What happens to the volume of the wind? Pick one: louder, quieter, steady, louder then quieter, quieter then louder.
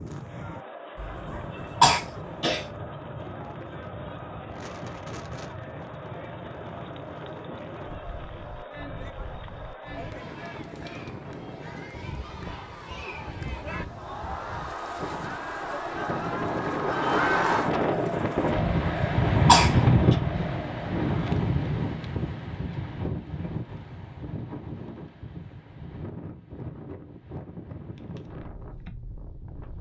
louder then quieter.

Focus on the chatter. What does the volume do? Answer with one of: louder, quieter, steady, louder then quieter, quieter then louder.
louder.